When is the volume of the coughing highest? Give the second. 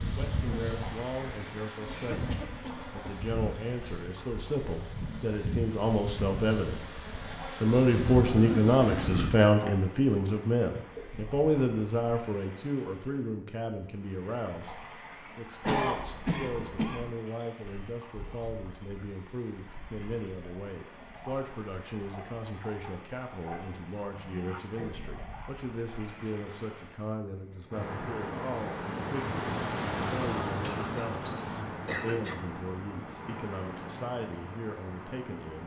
16 s.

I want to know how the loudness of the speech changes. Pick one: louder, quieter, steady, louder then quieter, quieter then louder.
louder then quieter.